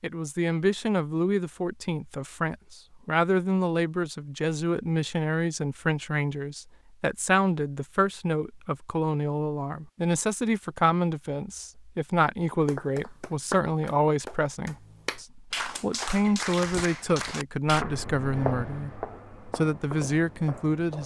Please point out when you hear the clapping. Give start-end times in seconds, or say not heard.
12.7-17.9.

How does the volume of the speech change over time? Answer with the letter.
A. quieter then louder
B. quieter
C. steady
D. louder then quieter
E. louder
C.